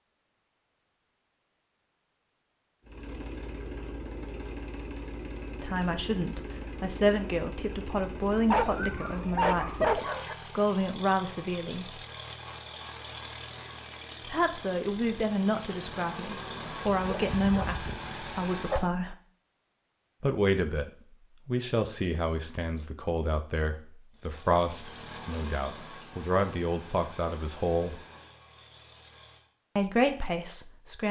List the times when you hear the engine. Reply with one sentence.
You can hear the engine from 2.9 to 18.9 s and from 24.1 to 29.5 s.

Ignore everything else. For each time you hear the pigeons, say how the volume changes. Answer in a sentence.
The pigeons can't be heard in this clip.